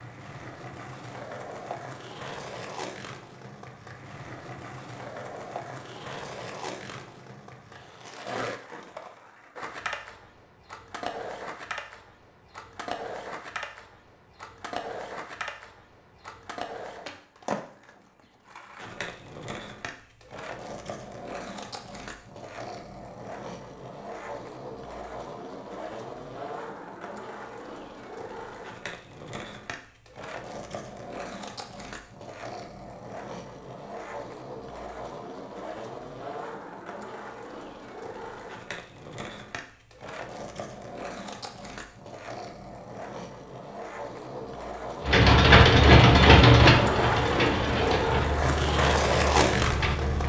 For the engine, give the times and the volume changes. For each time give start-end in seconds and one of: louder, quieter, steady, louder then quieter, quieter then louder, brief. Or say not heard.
45.0-50.2 quieter.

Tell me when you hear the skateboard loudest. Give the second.
49 s.